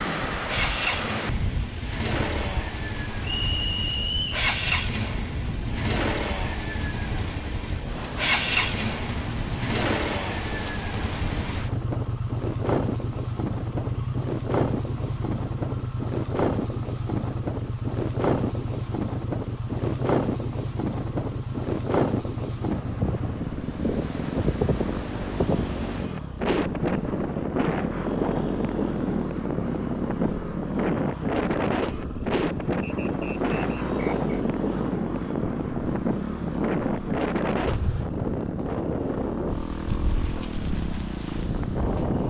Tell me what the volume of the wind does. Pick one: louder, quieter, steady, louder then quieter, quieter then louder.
louder.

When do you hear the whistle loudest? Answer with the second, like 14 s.
4 s.